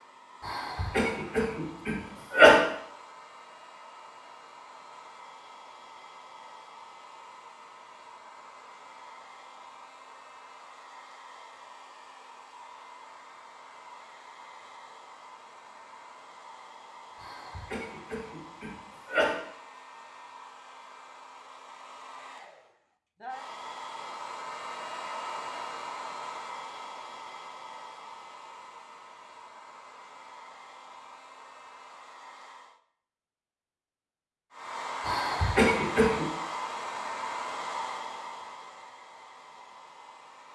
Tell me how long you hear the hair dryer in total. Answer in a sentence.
You can hear the hair dryer for 39 seconds altogether.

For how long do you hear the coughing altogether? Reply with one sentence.
The coughing can be heard for 6 seconds in total.